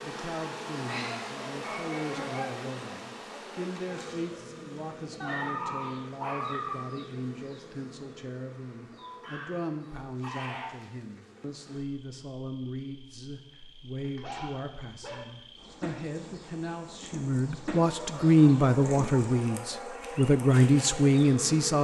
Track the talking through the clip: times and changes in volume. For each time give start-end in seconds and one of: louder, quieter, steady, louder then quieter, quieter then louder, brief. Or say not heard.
0.0-21.7 louder.